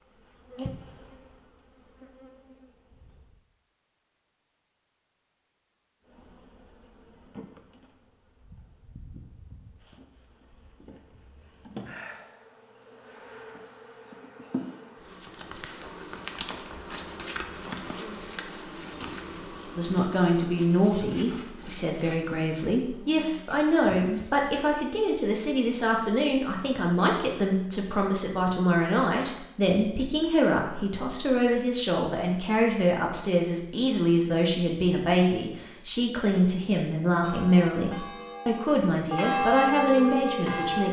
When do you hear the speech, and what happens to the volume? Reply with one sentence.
You can hear the speech from 19.8 to 40.8 s, at a steady volume.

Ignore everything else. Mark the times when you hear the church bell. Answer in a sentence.
You can hear the church bell from 37.2 to 40.8 s.